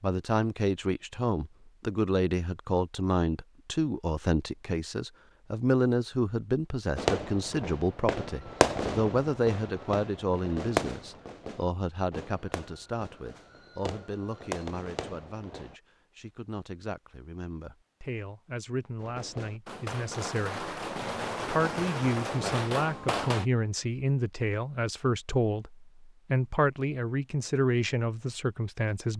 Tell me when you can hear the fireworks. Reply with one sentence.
The fireworks can be heard from 7.0 to 15.8 s and from 19.0 to 23.4 s.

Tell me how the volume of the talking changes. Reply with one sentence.
The volume of the talking goes down, then up.